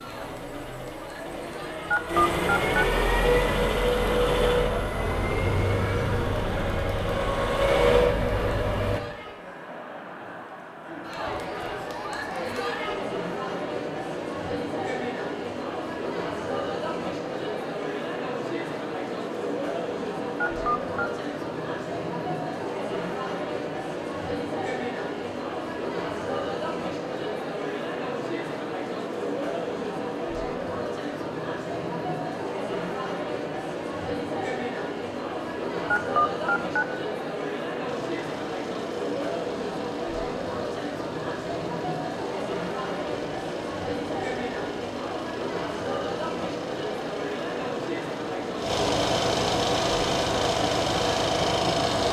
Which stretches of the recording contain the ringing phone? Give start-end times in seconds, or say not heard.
1.9-2.9, 20.4-21.1, 35.9-36.9.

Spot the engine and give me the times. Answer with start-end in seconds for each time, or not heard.
0.0-9.0, 37.9-52.0.